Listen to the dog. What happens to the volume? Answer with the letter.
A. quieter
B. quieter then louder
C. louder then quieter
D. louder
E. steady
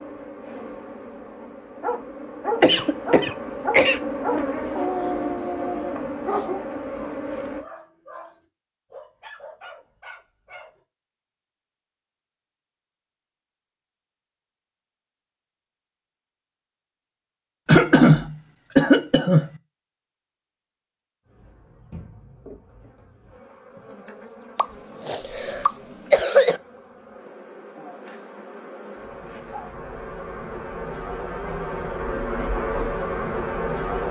A.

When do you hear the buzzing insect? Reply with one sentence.
You can hear the buzzing insect from 0.0 to 7.7 s and from 21.2 to 34.0 s.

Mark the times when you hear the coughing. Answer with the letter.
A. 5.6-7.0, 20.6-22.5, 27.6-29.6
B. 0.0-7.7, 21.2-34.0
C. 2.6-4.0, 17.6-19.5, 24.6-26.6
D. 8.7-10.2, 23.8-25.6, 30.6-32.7
C.